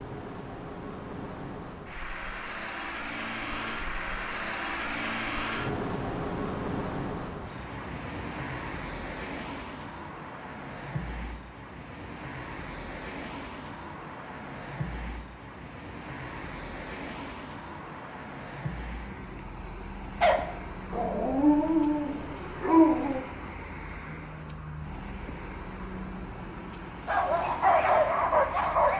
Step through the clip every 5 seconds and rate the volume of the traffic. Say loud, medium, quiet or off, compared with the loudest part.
loud, loud, medium, medium, medium, medium.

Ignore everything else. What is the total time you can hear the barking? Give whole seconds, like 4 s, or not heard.
5 s.